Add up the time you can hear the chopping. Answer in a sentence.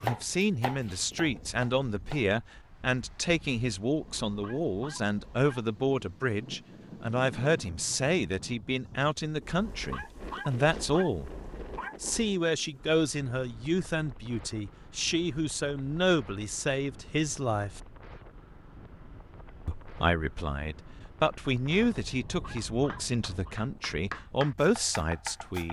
You can hear the chopping for 5 seconds altogether.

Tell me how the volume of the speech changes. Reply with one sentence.
The volume of the speech stays about the same.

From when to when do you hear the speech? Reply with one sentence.
The speech can be heard from 0.0 to 11.3 s, from 12.0 to 17.8 s and from 19.6 to 25.6 s.